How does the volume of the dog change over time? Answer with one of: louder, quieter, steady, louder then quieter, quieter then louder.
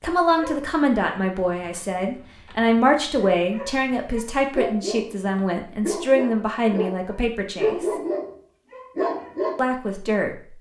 louder.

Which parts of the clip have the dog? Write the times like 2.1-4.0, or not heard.
0.4-9.6.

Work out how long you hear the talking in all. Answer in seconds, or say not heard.
9 s.